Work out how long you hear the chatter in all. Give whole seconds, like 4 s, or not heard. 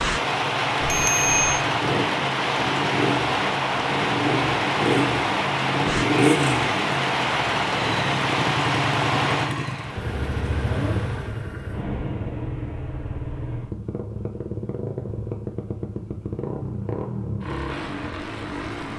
not heard.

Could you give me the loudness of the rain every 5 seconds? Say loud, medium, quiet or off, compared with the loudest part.
loud, loud, quiet, off.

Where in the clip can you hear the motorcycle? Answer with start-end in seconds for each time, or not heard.
0.0-18.9.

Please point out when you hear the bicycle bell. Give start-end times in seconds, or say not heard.
0.8-1.6.